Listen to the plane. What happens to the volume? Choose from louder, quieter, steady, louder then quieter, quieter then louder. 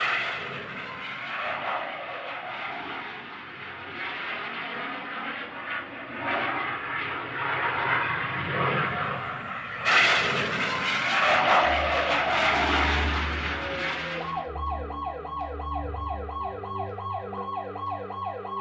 louder.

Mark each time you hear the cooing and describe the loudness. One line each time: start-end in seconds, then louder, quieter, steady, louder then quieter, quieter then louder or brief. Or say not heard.
not heard.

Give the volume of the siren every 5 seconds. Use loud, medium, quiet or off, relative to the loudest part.
off, off, loud, loud.